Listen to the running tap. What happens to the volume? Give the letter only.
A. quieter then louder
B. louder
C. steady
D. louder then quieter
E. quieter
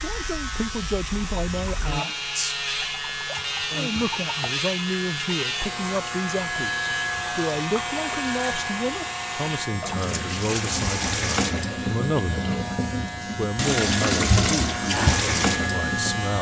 B.